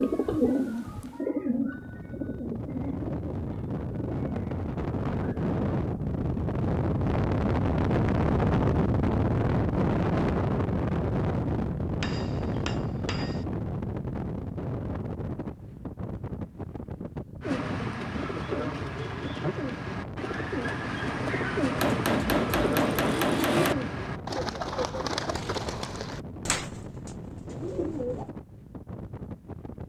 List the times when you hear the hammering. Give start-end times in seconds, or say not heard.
12.0-13.4, 21.8-23.8.